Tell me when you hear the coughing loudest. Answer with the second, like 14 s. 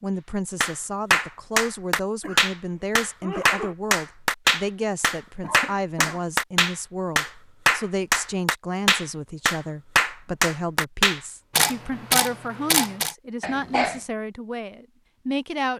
14 s.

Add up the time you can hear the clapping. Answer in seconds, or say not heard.
11 s.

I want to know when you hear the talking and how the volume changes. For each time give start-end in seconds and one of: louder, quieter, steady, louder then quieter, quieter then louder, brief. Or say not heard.
0.0-15.7 steady.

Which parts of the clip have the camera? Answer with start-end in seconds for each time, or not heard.
11.6-13.2.